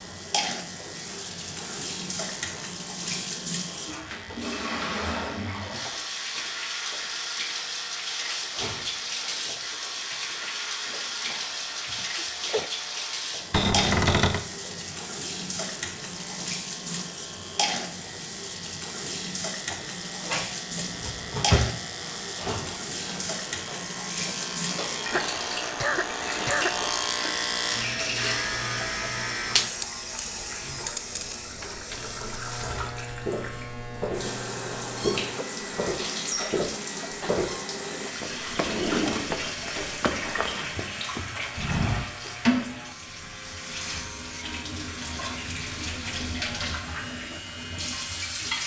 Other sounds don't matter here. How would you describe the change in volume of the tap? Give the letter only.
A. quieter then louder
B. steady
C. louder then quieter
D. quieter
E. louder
B.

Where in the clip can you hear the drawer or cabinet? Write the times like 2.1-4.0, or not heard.
13.5-14.4, 20.2-21.7, 38.5-39.3.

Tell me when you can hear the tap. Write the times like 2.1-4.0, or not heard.
0.0-48.6.